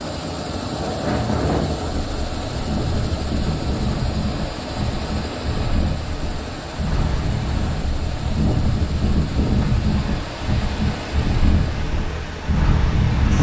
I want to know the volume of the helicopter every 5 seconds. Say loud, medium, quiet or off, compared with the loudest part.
loud, loud, medium.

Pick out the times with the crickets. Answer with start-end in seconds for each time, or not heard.
not heard.